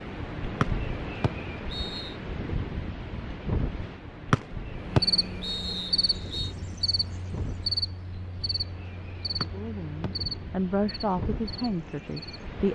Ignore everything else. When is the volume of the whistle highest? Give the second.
5 s.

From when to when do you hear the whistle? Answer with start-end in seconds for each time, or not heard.
0.6-2.1, 4.3-6.5, 9.4-10.1.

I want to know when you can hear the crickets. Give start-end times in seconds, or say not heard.
4.8-12.6.